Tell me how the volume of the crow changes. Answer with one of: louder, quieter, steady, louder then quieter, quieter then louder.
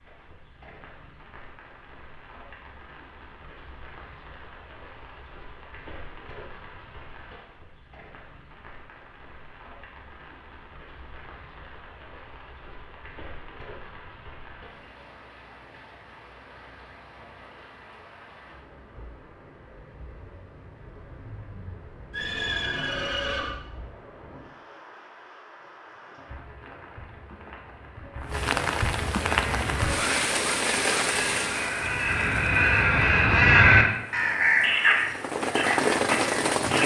louder then quieter.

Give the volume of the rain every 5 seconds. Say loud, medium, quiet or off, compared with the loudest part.
quiet, quiet, quiet, quiet, quiet, medium, medium, loud.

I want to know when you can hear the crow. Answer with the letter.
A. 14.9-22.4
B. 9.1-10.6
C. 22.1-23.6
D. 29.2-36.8
D.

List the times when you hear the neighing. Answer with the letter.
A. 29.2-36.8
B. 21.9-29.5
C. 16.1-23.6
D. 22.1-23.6
D.